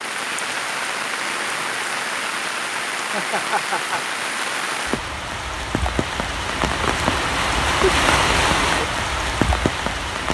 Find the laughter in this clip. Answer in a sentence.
You can hear the laughter from 3.0 to 4.2 s.